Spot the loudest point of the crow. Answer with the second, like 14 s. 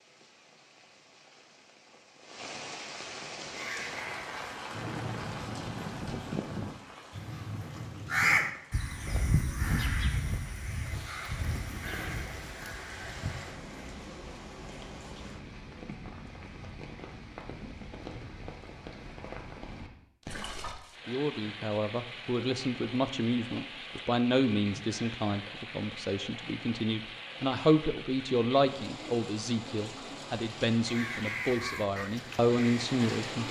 8 s.